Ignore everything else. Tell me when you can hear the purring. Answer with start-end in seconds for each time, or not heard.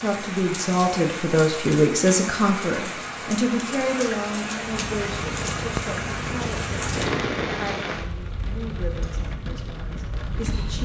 4.6-7.8.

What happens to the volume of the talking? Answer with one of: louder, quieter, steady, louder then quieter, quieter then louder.
quieter.